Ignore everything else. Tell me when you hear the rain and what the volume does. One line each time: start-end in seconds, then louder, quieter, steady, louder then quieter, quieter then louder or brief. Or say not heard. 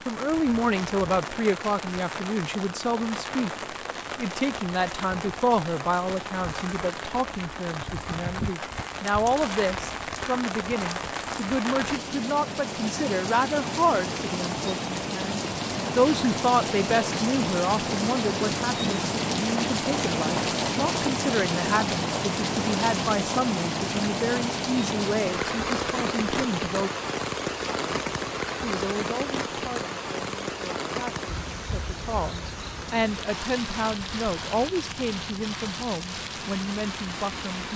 0.0-37.7 louder then quieter.